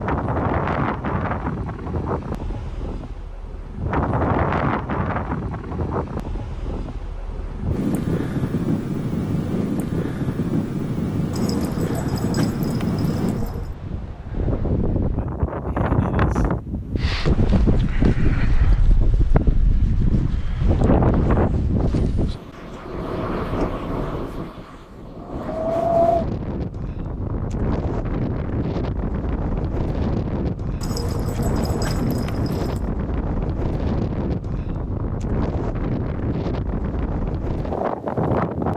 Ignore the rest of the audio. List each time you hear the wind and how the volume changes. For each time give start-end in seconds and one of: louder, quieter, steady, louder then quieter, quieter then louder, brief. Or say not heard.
0.0-38.7 steady.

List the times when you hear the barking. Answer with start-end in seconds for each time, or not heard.
11.3-13.8, 30.8-32.9.